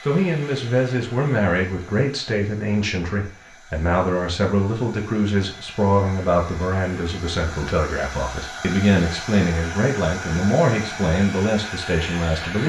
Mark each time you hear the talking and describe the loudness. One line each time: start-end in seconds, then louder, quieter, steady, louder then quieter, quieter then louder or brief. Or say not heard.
0.0-12.6 steady.